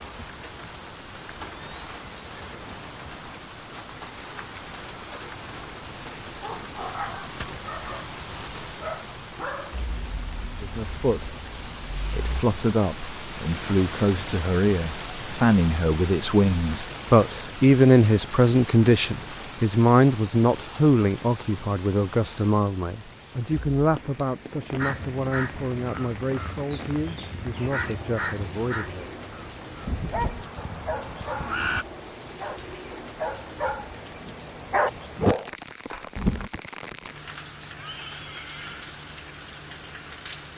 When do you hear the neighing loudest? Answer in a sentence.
The loudest moment of the neighing is at 38 seconds.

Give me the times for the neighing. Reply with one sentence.
The neighing can be heard from 1.6 to 3.3 s and from 37.8 to 38.9 s.